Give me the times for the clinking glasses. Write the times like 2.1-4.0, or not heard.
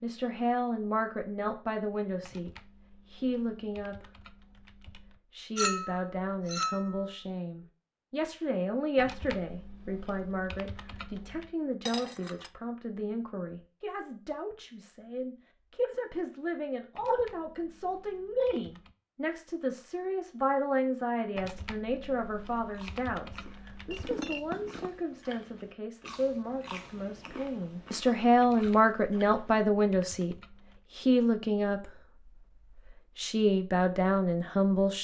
5.5-7.0, 11.8-12.5, 23.9-24.9.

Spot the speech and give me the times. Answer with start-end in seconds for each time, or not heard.
0.0-4.1, 5.3-31.9, 33.1-34.9.